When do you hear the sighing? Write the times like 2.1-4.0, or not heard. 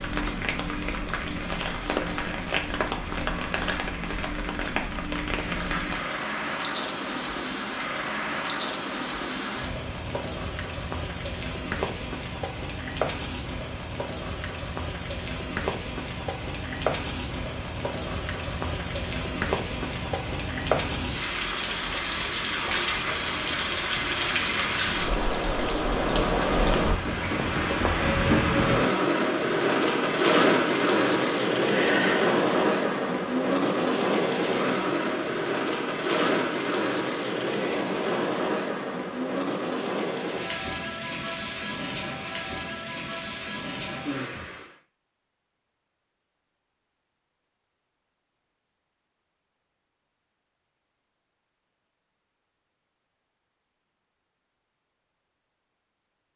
31.6-32.4.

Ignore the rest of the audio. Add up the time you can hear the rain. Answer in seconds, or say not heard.
45 s.